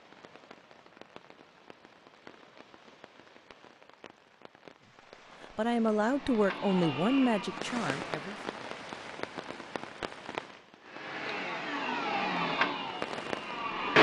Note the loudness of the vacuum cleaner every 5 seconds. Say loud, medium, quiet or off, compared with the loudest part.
off, medium, loud.